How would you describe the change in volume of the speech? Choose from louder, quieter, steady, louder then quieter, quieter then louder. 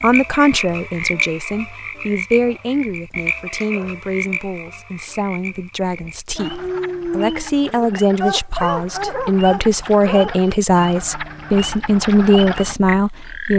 quieter then louder.